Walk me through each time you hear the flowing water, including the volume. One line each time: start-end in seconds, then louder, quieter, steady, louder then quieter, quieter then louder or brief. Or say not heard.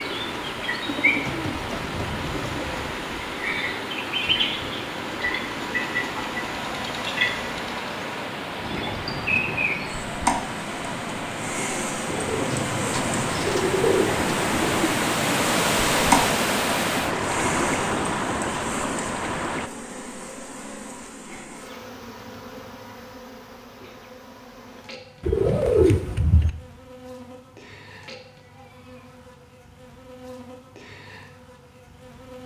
0.0-19.7 louder.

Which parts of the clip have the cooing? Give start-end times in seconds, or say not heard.
0.8-2.9, 12.1-14.9, 25.2-26.5.